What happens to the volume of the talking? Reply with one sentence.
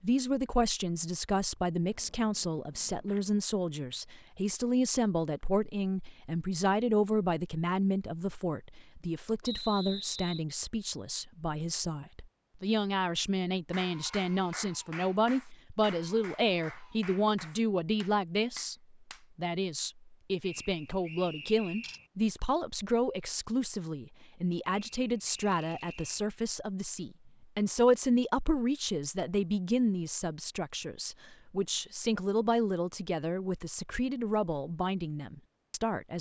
The volume of the talking stays about the same.